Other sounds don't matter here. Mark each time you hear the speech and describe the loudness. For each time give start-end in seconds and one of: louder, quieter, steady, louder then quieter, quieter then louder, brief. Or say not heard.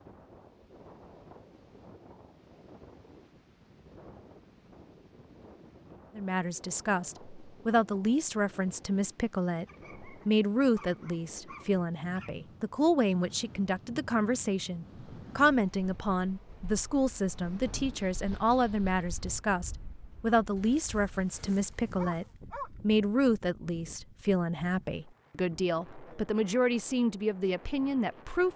6.2-28.5 steady.